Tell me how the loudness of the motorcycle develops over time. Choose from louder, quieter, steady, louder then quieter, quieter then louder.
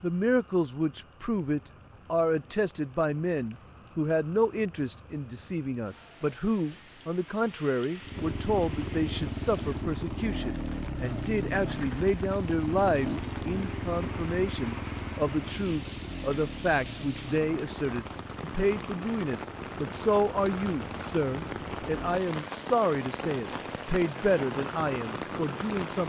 quieter.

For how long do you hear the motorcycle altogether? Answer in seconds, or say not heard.
14 s.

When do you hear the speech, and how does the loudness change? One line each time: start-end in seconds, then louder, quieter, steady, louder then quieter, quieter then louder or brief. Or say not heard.
0.0-26.0 steady.